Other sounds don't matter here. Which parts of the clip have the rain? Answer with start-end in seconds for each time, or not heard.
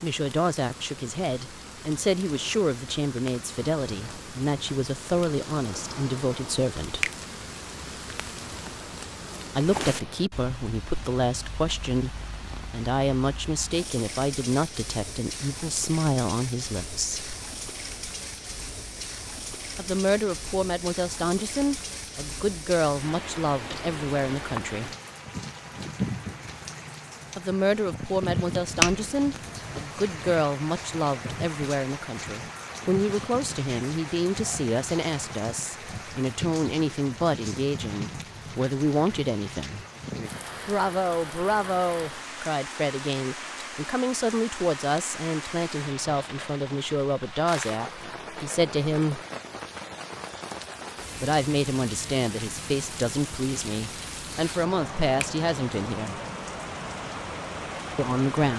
0.0-58.5.